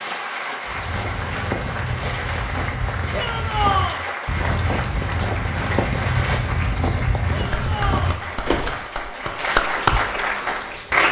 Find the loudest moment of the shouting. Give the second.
4 s.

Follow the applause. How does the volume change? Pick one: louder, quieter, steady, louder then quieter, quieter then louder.
louder.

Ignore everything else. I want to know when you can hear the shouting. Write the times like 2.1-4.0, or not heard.
3.1-4.0, 7.3-8.2.